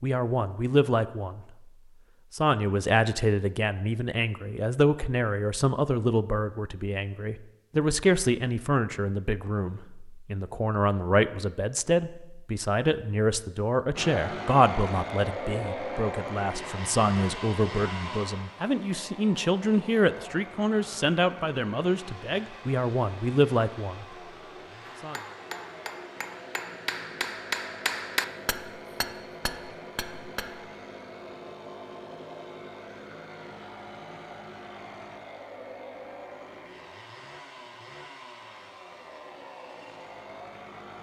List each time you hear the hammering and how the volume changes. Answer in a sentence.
You can hear the hammering from 24.9 to 30.6 s, getting louder then quieter.